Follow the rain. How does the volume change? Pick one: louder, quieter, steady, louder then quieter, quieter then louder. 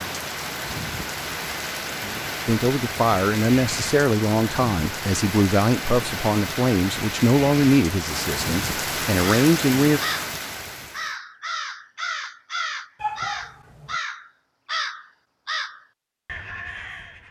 steady.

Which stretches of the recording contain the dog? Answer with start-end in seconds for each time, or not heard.
13.0-13.9.